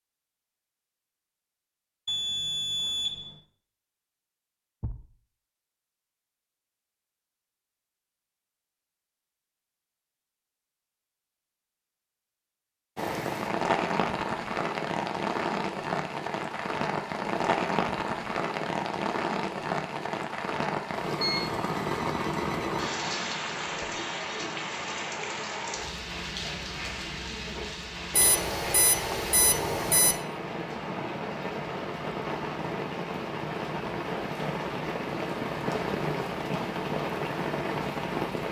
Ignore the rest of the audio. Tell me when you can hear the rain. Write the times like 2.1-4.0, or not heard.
12.9-38.4.